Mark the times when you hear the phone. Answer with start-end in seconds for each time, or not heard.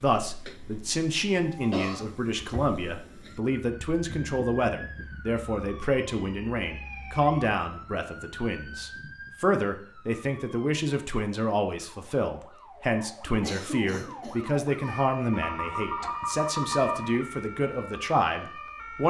15.3-17.2.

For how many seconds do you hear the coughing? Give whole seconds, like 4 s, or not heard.
2 s.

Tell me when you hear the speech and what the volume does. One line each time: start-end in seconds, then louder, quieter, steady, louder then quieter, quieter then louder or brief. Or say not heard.
0.0-19.0 steady.